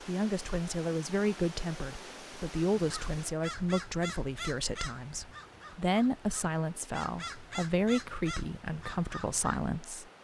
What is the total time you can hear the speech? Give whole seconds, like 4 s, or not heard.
10 s.